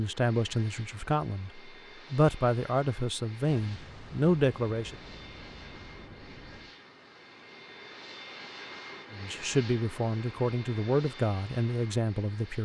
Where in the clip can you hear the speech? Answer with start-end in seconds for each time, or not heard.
0.0-5.0, 9.1-12.6.